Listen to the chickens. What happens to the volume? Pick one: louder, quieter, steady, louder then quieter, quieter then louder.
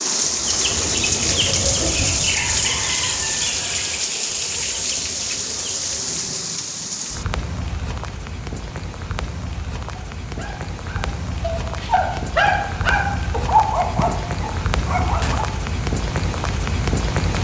quieter.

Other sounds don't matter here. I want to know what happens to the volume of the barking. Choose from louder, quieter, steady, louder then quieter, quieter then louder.
louder then quieter.